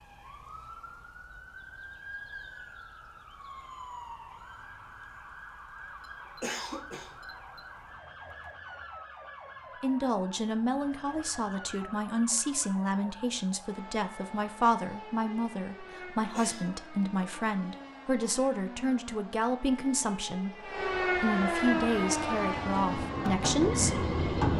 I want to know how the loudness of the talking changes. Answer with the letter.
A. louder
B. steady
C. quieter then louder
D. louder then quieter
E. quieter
B.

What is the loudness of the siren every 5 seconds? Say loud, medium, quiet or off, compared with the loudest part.
quiet, quiet, quiet, quiet, loud.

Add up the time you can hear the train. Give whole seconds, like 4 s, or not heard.
3 s.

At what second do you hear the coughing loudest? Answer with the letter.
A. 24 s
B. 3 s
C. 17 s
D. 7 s
D.